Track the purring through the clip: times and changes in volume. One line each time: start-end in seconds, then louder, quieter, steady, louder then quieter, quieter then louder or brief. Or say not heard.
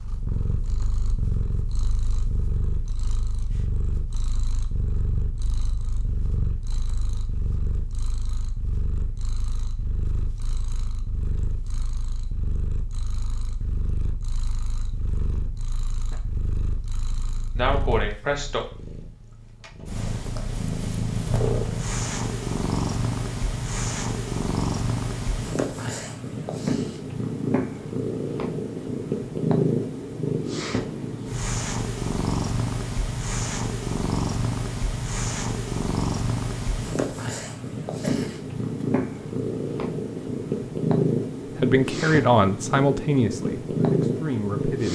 0.0-44.9 louder.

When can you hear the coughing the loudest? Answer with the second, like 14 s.
18 s.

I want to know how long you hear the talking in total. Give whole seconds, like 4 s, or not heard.
3 s.